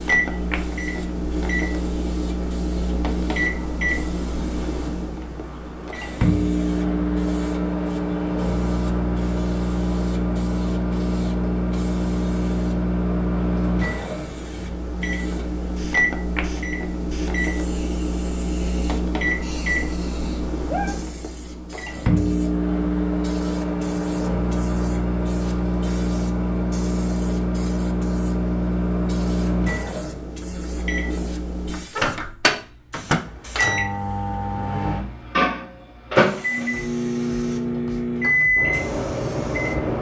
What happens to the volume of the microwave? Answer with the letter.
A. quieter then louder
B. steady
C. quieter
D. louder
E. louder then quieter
B.